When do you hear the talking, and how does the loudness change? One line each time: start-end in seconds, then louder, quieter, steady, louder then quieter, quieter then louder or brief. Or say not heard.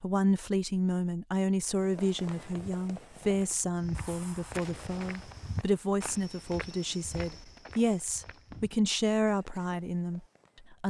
0.0-10.8 steady.